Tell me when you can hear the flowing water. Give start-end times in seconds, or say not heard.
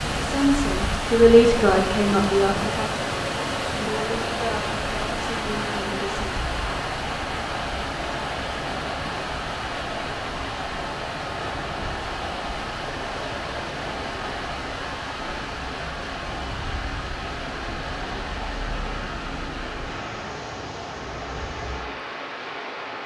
0.0-23.0.